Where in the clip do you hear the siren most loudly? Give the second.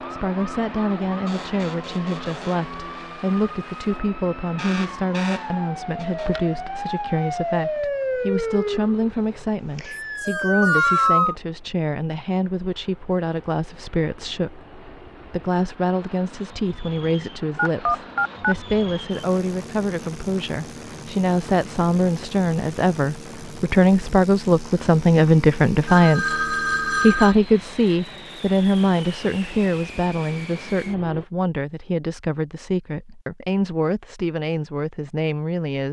11 s.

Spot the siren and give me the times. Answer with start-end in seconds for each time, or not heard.
0.2-11.3.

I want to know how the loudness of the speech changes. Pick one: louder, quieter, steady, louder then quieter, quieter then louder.
louder then quieter.